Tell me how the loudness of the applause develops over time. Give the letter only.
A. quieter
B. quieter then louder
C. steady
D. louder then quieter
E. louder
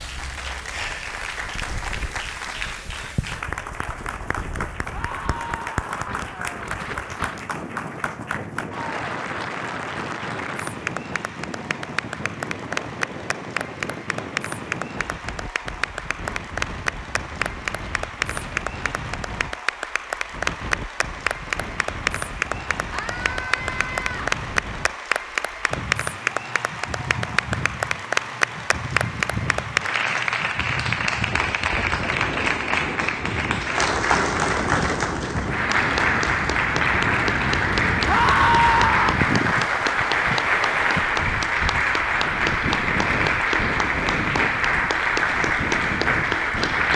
E.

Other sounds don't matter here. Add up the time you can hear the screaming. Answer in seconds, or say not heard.
4 s.